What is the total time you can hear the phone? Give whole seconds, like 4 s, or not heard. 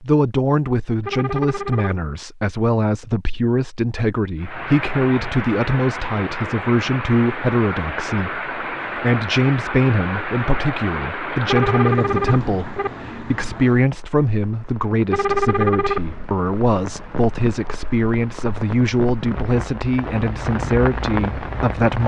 4 s.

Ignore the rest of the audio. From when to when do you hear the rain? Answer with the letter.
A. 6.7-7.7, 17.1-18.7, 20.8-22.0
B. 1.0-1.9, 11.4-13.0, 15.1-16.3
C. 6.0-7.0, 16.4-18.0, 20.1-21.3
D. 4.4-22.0
D.